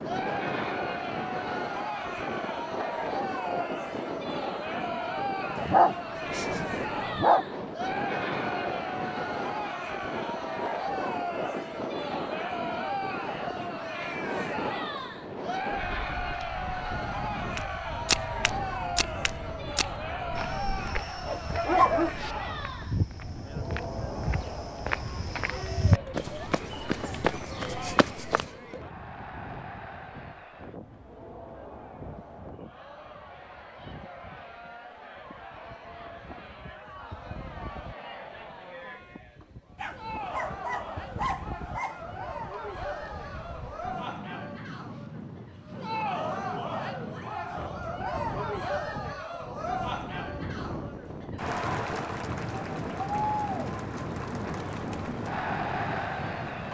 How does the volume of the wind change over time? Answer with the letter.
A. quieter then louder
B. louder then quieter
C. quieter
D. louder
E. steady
A.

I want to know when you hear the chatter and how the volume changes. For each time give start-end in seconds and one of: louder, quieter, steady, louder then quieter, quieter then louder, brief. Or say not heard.
0.0-56.6 quieter then louder.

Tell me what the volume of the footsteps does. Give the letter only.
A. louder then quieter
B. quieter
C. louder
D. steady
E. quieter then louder
E.